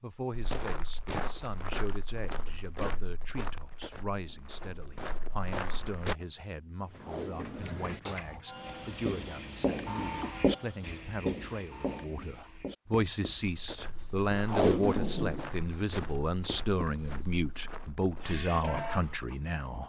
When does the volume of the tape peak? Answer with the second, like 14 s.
15 s.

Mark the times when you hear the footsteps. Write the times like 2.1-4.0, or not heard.
0.3-6.2, 13.4-19.1.